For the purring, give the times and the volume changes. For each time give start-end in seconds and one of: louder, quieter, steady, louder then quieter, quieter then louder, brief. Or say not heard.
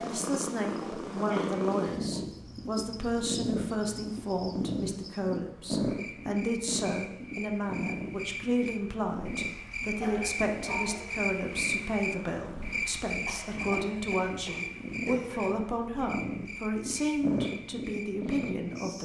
0.0-19.0 quieter then louder.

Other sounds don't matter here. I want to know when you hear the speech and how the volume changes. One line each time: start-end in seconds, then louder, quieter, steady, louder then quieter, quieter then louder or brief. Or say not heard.
0.0-19.0 steady.